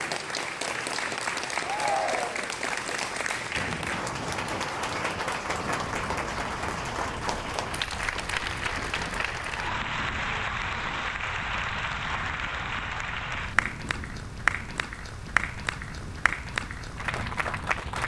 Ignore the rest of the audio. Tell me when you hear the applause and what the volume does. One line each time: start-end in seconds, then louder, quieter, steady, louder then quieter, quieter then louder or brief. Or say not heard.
0.0-18.0 steady.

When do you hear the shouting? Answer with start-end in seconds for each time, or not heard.
1.6-2.5.